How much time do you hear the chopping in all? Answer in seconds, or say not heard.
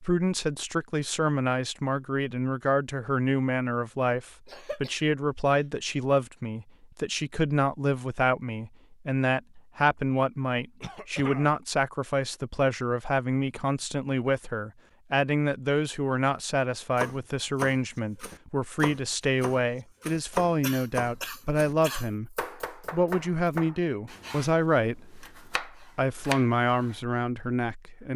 10 s.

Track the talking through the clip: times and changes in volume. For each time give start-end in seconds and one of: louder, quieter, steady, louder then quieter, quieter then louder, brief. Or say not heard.
0.0-28.1 steady.